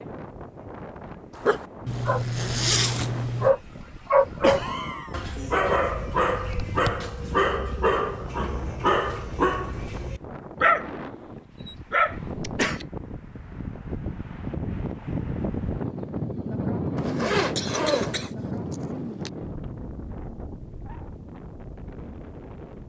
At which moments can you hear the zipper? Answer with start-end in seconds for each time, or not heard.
1.9-3.5, 16.9-18.3.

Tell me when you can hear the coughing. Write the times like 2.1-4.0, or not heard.
4.4-5.2, 12.3-12.8, 17.6-19.3.